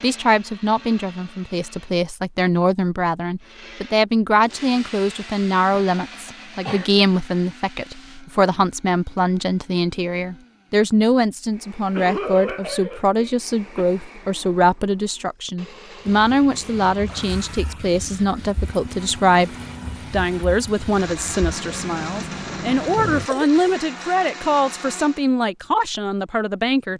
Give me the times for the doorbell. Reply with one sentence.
The doorbell can't be heard in this clip.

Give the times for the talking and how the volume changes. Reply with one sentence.
The talking can be heard from 0.0 to 26.9 s, at a steady volume.